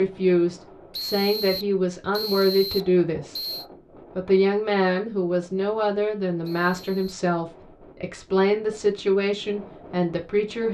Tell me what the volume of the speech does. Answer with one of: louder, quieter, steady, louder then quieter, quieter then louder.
steady.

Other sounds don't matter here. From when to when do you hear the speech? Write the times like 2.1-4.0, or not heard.
0.0-3.4, 4.2-10.7.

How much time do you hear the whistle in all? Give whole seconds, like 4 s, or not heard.
3 s.